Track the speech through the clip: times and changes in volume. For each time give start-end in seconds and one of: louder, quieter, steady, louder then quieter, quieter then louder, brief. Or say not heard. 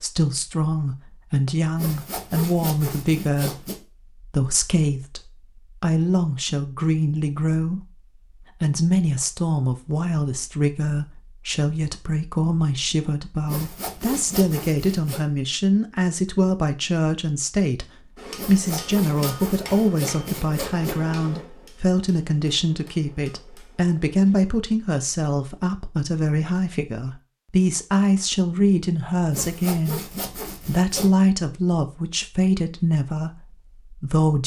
0.0-34.4 steady.